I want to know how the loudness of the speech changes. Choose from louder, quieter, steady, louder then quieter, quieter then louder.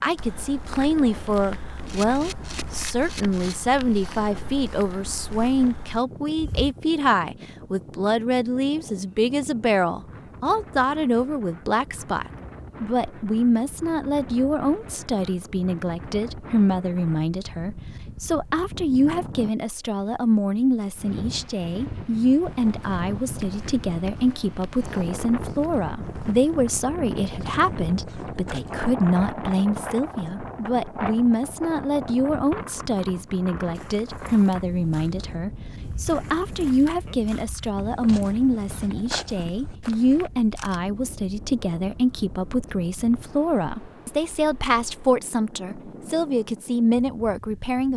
steady.